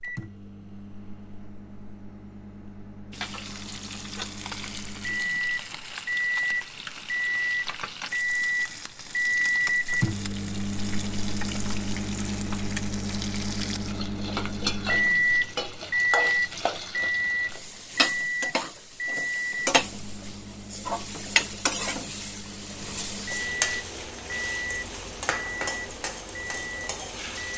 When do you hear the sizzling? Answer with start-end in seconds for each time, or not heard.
3.1-27.5.